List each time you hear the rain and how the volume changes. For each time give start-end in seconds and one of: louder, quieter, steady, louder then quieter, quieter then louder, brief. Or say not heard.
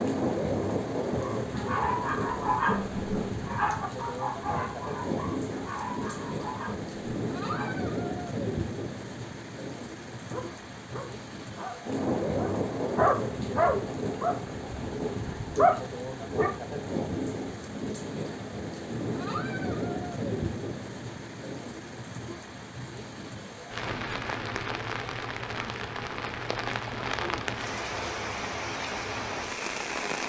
0.0-30.2 steady.